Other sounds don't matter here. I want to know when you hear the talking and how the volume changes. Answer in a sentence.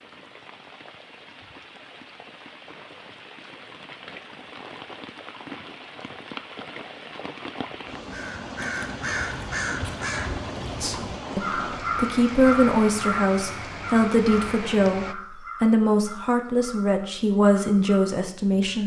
The talking can be heard from 10.6 to 18.8 s, at a steady volume.